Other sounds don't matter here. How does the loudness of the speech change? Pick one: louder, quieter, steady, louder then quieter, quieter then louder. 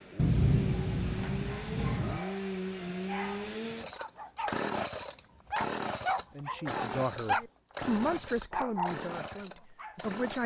louder then quieter.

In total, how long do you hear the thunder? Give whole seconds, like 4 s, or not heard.
2 s.